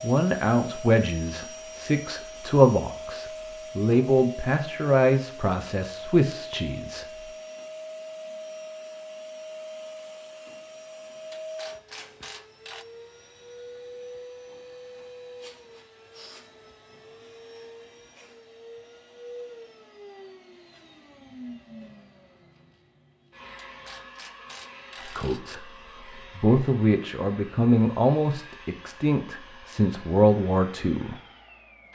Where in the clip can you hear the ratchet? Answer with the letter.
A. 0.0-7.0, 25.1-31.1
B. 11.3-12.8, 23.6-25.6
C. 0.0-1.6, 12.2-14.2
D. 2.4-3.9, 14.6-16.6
B.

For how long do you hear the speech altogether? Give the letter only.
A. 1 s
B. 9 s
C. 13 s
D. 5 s
C.